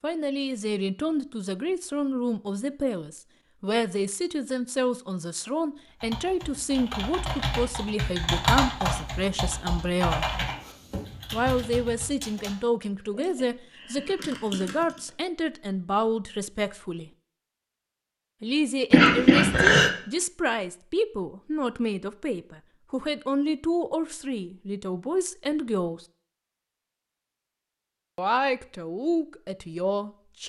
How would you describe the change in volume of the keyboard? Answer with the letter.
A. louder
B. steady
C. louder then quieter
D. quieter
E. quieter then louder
C.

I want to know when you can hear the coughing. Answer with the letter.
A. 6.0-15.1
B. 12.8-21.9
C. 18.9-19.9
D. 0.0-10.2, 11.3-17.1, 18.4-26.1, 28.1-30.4
C.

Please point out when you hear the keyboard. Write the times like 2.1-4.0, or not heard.
6.0-15.1.